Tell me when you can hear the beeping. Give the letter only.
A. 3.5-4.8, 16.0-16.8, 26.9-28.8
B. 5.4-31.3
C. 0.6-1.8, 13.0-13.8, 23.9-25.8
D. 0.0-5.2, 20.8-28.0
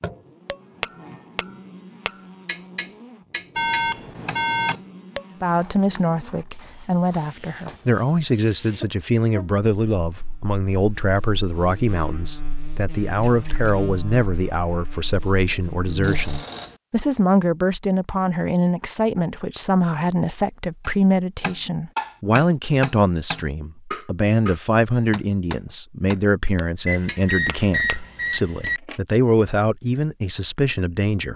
A.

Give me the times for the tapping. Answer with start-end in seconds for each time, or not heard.
0.0-5.2, 20.8-28.0.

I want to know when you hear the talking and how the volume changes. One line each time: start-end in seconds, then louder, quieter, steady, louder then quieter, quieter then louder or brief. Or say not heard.
5.4-31.3 steady.